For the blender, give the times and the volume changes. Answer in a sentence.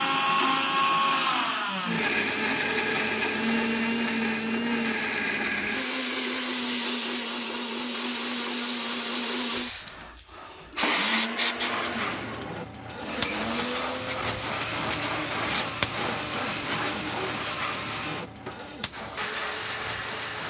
You can hear the blender from 0.0 to 20.4 s, getting quieter.